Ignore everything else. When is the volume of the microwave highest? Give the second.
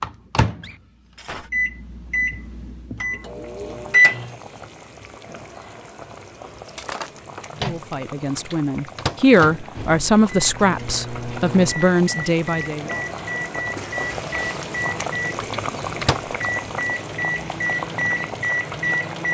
4 s.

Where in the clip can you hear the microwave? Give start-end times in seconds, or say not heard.
0.0-4.3, 7.5-19.2.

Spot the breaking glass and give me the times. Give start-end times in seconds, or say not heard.
0.6-1.5, 6.7-8.0, 13.8-14.8.